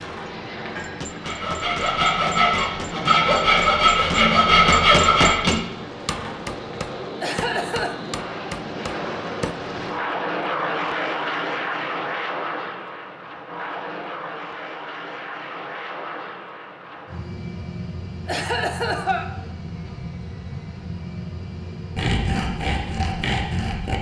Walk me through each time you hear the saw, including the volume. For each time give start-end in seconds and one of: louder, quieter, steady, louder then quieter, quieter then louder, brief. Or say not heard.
0.0-6.3 louder
21.9-23.9 brief.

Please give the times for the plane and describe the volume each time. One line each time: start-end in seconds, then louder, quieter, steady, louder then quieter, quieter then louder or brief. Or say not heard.
0.0-23.9 louder then quieter.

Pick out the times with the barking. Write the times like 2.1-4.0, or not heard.
not heard.